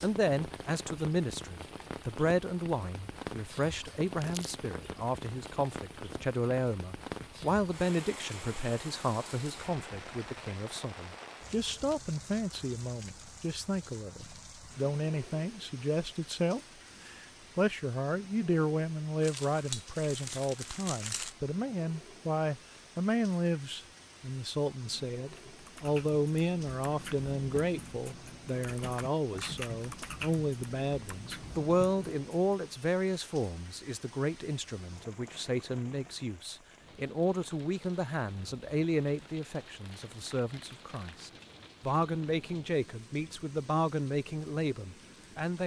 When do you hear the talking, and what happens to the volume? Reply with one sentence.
The talking can be heard from 0.0 to 45.6 s, at a steady volume.